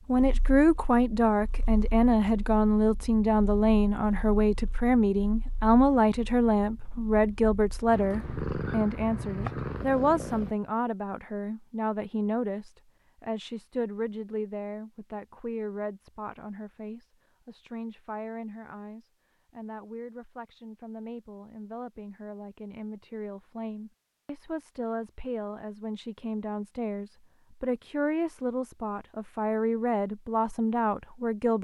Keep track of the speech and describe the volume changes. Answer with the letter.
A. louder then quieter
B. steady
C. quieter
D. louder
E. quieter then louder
E.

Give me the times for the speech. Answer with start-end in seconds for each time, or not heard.
0.1-31.6.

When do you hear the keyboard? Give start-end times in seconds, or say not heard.
not heard.